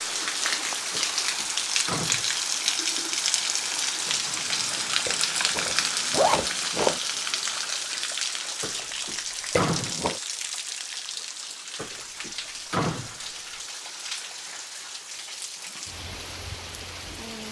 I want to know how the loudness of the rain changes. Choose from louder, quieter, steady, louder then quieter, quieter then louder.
quieter.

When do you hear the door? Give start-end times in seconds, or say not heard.
0.9-2.3, 8.6-9.9, 11.8-13.6.